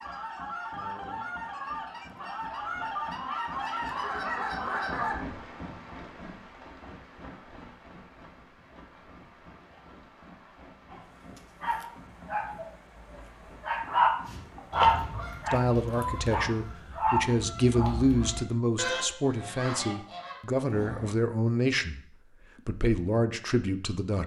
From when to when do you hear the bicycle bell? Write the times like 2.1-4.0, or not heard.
not heard.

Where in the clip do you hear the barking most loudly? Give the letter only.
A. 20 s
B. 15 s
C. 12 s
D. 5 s
B.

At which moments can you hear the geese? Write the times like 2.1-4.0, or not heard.
0.0-5.2, 14.2-21.1.